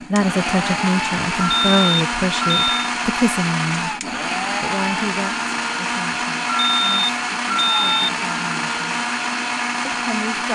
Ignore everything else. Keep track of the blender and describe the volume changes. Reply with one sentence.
The volume of the blender stays about the same.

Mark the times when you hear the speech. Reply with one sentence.
You can hear the speech from 0.1 to 4.0 s, from 4.6 to 9.0 s and from 9.8 to 10.5 s.